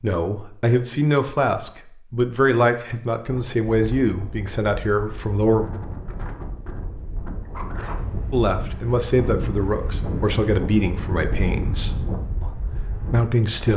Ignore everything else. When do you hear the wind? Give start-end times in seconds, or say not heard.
3.2-13.7.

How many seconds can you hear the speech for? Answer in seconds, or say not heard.
11 s.